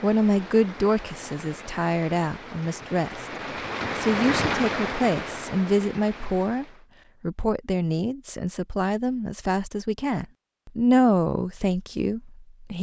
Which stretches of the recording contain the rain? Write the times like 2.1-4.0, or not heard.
0.0-6.8.